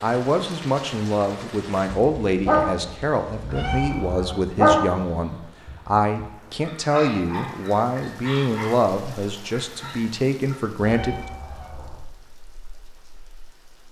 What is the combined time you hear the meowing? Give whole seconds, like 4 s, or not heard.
2 s.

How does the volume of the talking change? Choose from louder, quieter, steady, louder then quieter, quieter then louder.
steady.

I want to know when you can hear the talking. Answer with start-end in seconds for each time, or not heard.
0.0-11.2.